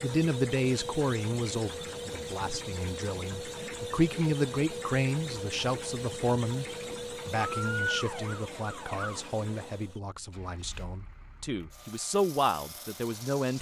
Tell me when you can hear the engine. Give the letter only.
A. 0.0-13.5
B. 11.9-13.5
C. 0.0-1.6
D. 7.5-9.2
A.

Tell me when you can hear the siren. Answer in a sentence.
The siren can be heard from 7.5 to 9.2 s.